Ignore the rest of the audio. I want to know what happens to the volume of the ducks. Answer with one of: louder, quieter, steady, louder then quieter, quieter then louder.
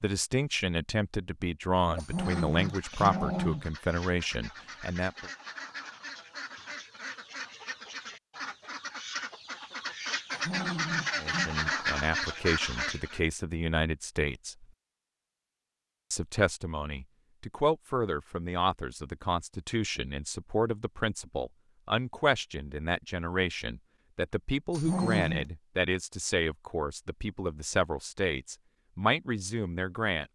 louder.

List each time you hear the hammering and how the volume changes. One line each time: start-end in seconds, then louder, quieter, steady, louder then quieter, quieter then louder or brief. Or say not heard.
not heard.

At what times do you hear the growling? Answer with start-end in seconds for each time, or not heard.
1.9-3.6, 10.3-11.5, 24.7-25.5.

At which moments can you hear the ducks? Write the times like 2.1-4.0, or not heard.
1.8-13.2.